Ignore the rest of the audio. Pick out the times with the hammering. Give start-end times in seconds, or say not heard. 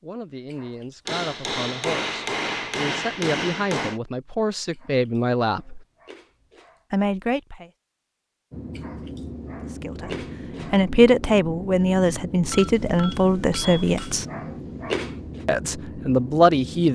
1.1-4.0, 12.5-14.3.